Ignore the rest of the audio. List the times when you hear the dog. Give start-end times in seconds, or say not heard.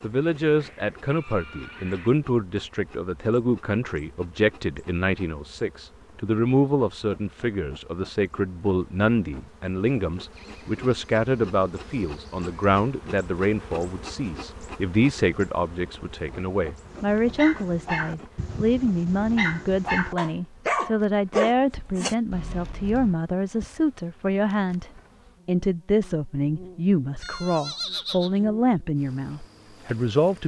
16.9-23.1.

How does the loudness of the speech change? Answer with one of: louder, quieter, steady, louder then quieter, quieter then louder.
steady.